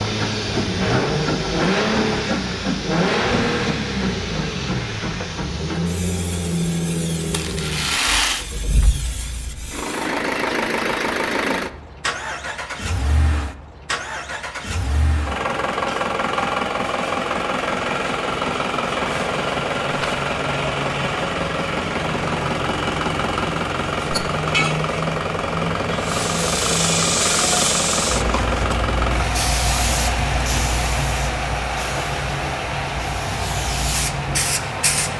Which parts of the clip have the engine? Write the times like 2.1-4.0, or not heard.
0.0-35.1.